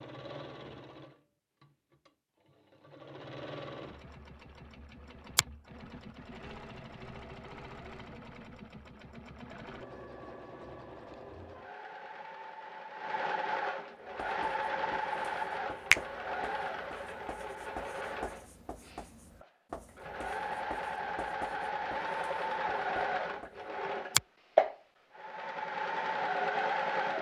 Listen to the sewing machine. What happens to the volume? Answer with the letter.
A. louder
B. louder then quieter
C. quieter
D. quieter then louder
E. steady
A.